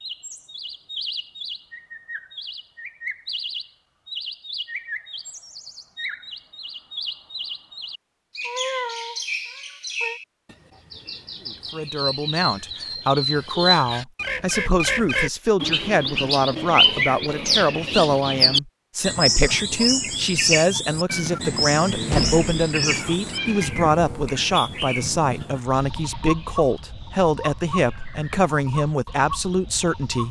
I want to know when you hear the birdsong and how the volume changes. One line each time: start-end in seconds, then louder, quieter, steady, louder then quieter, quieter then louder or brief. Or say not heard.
0.0-30.2 louder then quieter.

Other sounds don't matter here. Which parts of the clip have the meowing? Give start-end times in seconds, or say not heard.
8.4-10.2, 21.1-23.7.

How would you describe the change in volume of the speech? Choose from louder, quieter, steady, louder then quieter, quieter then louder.
steady.